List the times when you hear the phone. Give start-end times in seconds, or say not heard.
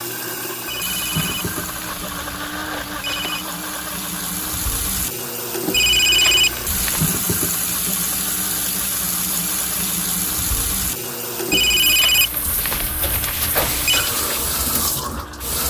0.7-3.5, 5.7-7.1, 11.5-14.1.